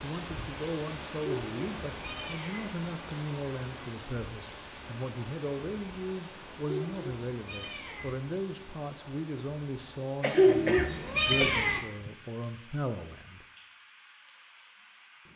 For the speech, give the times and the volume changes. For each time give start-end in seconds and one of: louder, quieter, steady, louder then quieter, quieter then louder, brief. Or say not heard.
0.0-13.4 steady.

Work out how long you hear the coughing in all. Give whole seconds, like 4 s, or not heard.
2 s.